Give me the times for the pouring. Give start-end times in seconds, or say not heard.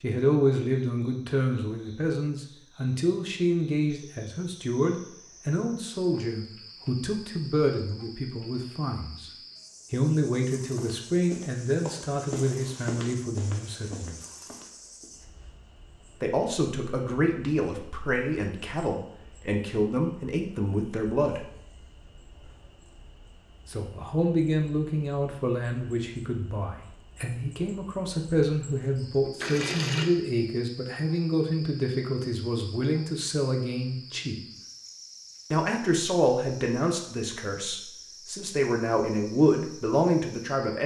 29.4-30.1.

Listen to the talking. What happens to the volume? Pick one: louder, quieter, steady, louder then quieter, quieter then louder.
steady.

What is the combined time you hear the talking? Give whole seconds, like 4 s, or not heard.
35 s.